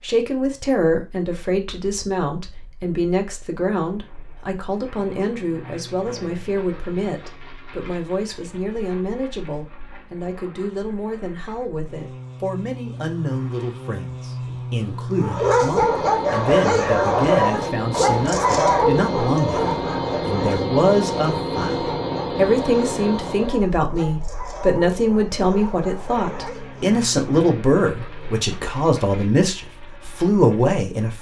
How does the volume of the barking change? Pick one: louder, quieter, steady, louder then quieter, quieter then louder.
quieter.